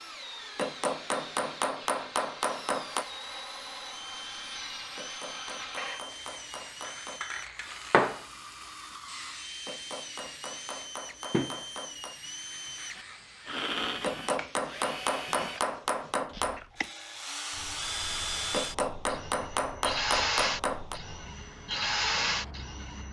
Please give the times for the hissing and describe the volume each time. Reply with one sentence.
You can hear the hissing from 0.0 to 23.0 s, getting louder then quieter.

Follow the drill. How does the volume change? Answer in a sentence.
The loudness of the drill goes up.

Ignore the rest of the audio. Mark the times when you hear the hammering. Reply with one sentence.
You can hear the hammering from 0.6 to 3.0 s, from 5.0 to 7.2 s, from 9.7 to 12.2 s, from 14.0 to 16.6 s and from 18.5 to 21.0 s.